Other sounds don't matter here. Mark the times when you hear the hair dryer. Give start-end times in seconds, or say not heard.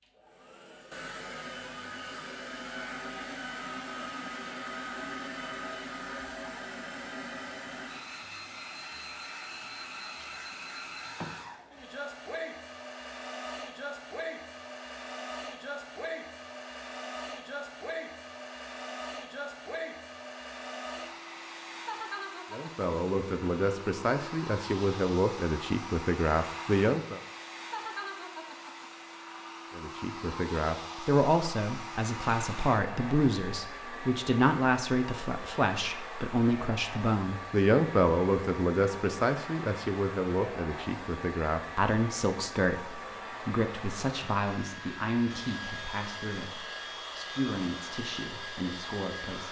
0.0-49.4.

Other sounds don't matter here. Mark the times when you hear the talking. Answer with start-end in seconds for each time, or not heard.
22.5-27.2, 29.8-49.4.